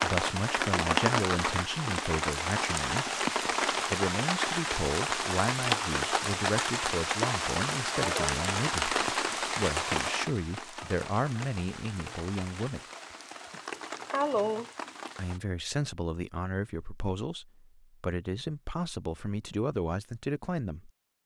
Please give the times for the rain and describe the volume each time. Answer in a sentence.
The rain can be heard from 0.0 to 15.4 s, getting quieter.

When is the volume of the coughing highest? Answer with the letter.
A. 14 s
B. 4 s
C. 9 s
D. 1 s
A.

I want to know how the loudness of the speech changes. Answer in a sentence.
The volume of the speech stays about the same.